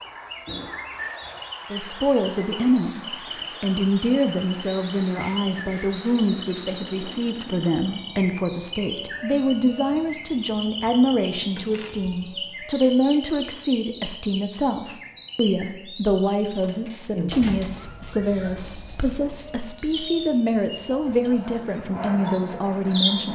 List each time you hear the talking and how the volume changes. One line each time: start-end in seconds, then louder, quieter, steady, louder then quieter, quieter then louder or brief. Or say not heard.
1.7-3.0 brief
3.6-23.2 steady.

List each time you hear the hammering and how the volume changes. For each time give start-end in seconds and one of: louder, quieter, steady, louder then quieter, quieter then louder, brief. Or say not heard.
not heard.